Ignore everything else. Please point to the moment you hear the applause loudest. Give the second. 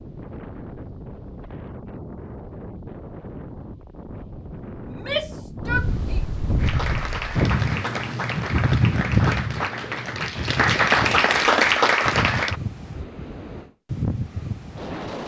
11 s.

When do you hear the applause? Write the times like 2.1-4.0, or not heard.
6.5-12.6.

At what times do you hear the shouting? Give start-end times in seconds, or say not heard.
4.8-6.2.